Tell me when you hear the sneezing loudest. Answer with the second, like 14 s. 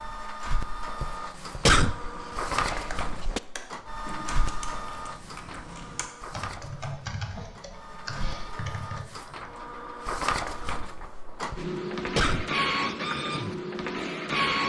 2 s.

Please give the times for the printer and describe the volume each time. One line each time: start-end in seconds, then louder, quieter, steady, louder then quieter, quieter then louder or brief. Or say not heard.
0.0-14.6 quieter then louder.